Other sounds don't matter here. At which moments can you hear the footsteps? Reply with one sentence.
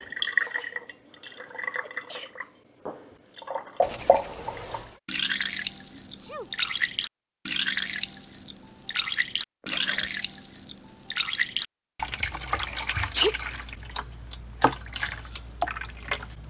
The footsteps can't be heard in this clip.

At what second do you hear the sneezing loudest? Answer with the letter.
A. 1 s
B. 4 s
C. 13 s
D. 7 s
C.